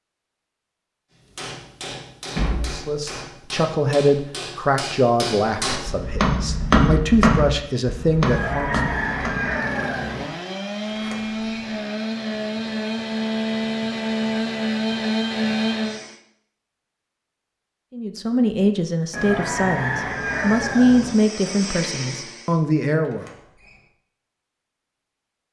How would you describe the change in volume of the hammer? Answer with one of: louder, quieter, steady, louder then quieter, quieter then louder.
louder then quieter.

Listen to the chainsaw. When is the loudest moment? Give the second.
15 s.